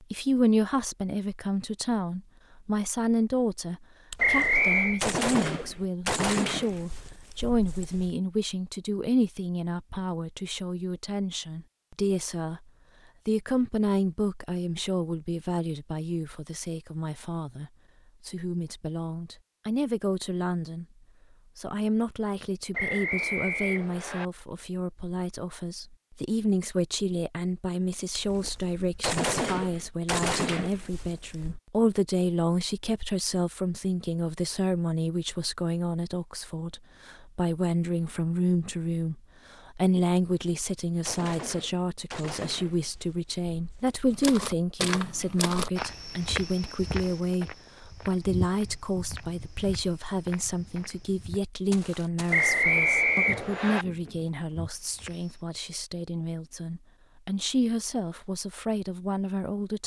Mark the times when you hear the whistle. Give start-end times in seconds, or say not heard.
4.2-5.0, 22.7-24.2, 52.3-53.9.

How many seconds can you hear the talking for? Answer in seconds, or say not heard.
59 s.